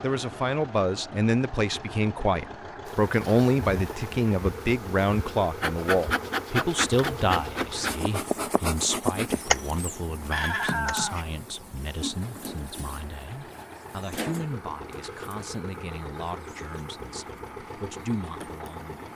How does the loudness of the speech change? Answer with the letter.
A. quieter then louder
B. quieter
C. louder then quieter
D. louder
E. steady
B.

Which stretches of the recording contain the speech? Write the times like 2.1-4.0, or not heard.
0.0-19.1.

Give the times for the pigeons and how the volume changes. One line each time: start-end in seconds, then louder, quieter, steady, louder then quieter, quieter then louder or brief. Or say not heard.
not heard.